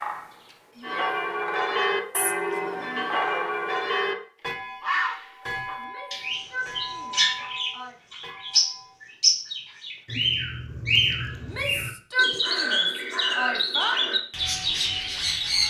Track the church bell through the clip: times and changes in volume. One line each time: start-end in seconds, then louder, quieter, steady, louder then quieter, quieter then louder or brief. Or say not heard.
0.8-9.0 quieter.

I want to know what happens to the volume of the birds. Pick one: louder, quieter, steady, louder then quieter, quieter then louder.
louder.